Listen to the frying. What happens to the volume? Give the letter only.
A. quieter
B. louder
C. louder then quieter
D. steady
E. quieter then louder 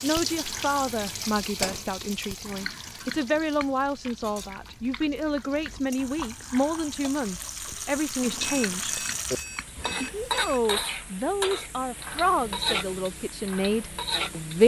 E.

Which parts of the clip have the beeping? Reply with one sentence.
You can hear the beeping from 8.2 to 10.7 s.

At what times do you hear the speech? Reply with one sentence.
You can hear the speech from 0.0 to 9.0 s and from 10.0 to 14.6 s.